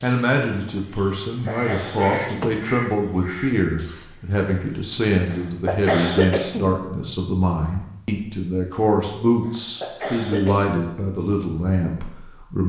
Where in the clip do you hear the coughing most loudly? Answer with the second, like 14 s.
6 s.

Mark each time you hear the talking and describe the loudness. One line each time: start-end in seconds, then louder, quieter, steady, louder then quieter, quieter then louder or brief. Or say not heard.
0.0-12.6 steady.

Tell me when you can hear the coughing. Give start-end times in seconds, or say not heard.
1.2-2.4, 5.3-6.8, 9.4-10.7.